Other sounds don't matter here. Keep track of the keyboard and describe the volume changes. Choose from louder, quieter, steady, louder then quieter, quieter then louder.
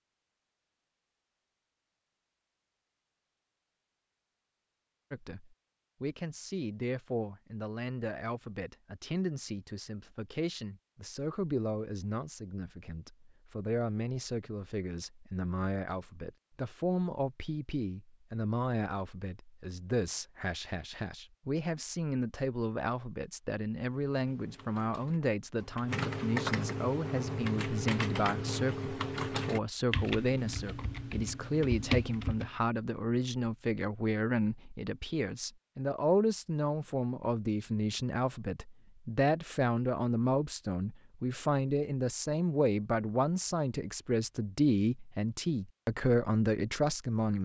louder.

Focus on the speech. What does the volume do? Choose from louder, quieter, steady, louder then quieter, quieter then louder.
louder.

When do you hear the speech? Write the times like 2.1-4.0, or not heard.
5.1-47.3.